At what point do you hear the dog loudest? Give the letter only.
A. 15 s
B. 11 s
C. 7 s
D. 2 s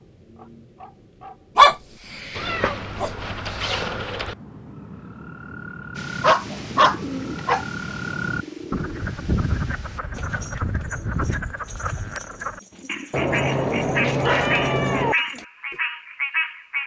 D.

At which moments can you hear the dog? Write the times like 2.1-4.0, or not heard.
1.6-3.1, 6.2-7.7, 14.1-15.1.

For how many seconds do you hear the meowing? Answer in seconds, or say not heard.
4 s.